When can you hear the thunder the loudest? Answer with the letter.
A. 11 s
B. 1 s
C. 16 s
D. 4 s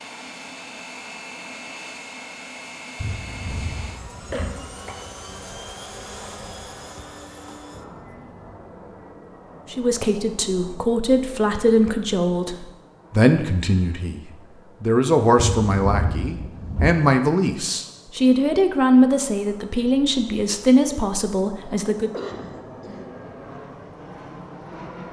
C.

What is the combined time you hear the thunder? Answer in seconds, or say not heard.
3 s.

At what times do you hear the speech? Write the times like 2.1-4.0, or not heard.
9.7-22.1.